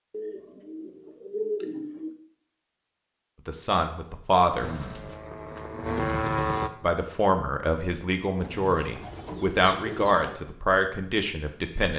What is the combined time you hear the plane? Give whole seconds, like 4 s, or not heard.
2 s.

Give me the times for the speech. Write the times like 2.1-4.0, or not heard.
3.5-4.7, 6.8-11.9.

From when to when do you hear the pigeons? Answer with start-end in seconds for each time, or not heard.
0.1-2.1, 4.5-5.8, 8.3-10.3.